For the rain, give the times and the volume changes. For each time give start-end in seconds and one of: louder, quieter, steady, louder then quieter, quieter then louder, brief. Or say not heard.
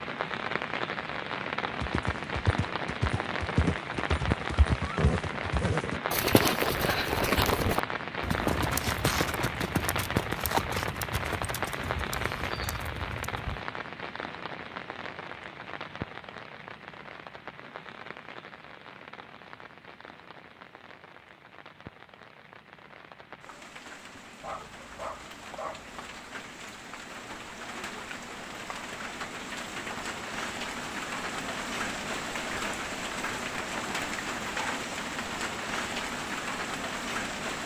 0.0-37.6 quieter then louder.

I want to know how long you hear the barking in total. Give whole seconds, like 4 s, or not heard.
2 s.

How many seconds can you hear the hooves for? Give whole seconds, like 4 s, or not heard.
12 s.